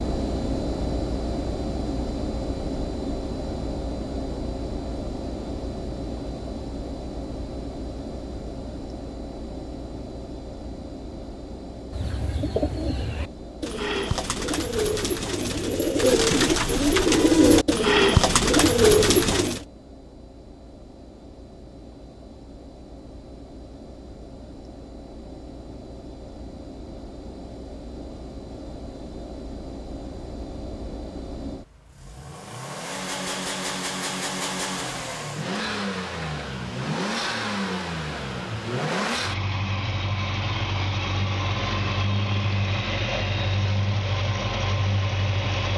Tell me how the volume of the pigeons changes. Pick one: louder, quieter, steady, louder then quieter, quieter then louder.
louder.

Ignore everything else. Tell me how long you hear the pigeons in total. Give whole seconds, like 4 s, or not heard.
8 s.